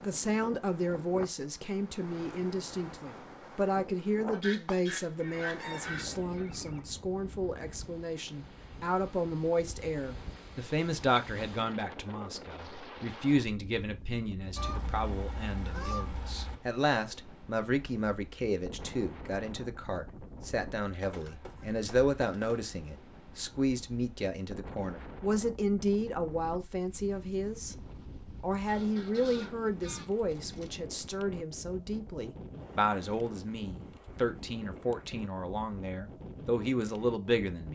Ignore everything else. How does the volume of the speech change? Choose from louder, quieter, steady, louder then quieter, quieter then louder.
steady.